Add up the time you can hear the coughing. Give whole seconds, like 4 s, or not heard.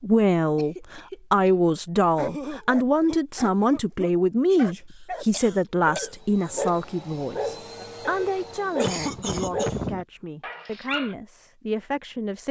4 s.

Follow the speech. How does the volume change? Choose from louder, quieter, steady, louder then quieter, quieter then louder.
quieter.